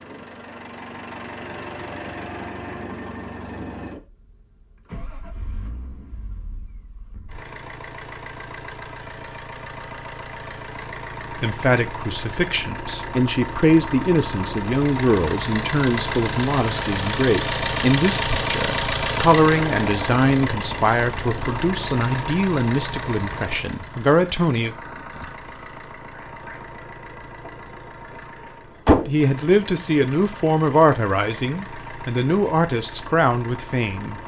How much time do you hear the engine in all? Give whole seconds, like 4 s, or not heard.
34 s.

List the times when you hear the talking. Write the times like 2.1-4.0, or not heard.
11.3-24.8, 29.1-34.2.